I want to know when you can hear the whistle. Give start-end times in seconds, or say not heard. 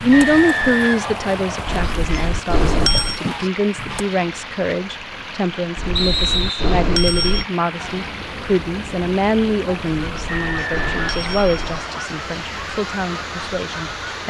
0.1-1.9, 6.0-6.8, 10.2-11.8.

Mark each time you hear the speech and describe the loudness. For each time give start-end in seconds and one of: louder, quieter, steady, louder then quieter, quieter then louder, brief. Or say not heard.
0.0-14.2 steady.